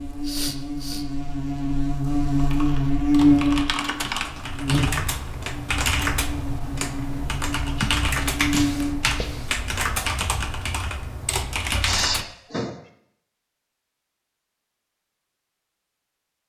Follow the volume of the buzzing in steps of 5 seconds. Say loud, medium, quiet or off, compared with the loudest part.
loud, medium, off, off.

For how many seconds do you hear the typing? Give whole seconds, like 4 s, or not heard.
10 s.